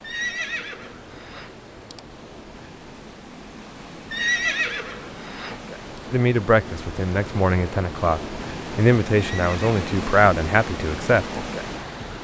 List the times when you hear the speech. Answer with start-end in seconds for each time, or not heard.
6.1-11.4.